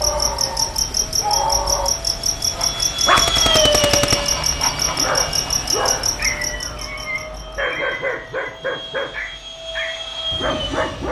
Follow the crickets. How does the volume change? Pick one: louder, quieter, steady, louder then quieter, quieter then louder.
quieter.